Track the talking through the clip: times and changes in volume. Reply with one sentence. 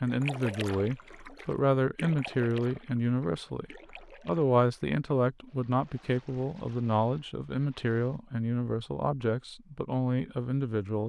The talking can be heard from 0.0 to 11.0 s, at a steady volume.